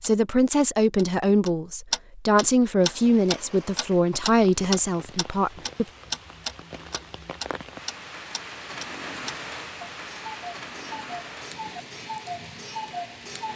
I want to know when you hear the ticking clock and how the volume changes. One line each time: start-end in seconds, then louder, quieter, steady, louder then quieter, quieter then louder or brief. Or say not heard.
0.0-13.5 quieter.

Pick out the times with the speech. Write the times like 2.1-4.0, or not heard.
0.0-5.8.